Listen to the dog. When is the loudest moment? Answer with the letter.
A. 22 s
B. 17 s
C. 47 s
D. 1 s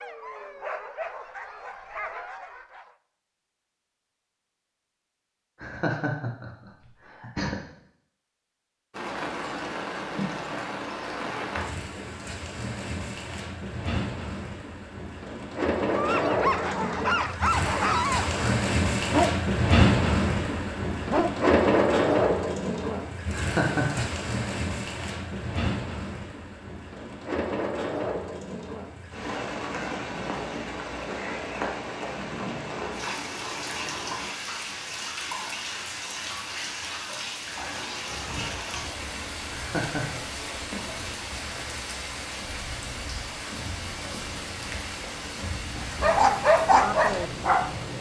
C.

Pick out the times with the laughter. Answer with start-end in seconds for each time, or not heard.
5.6-7.6, 23.3-24.2, 39.5-40.2.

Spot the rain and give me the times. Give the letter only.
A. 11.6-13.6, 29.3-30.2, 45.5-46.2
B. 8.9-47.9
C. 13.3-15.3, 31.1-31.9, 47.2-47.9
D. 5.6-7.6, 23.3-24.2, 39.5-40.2
B.